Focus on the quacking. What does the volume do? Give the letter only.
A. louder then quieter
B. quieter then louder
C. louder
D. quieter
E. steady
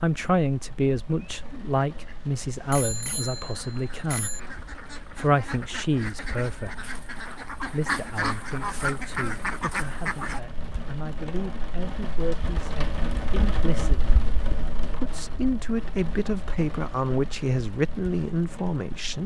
C.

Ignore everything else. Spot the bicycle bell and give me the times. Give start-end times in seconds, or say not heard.
2.7-4.4.